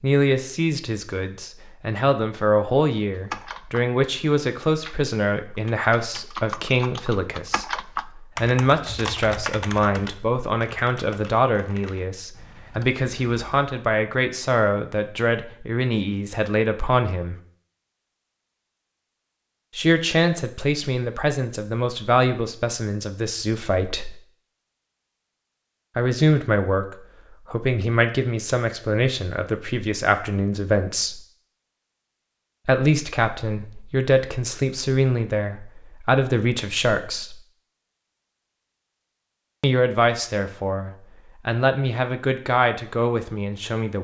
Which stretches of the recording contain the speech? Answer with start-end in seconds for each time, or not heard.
0.0-17.4, 19.8-24.1, 25.9-31.2, 32.6-37.4, 39.6-43.9.